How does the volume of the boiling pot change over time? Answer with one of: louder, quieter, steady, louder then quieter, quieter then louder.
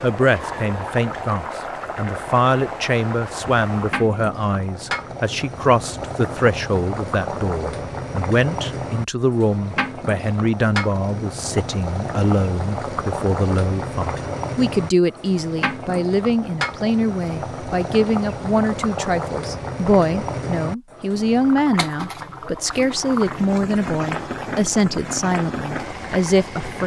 steady.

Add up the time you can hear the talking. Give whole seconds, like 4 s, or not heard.
27 s.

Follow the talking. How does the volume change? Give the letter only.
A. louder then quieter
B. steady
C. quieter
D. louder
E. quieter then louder
B.